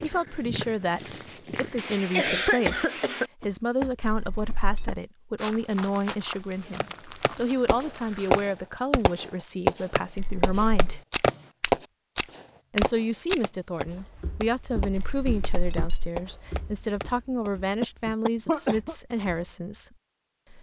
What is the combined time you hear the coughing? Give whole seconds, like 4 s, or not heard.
3 s.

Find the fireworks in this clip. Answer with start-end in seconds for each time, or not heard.
6.8-17.5.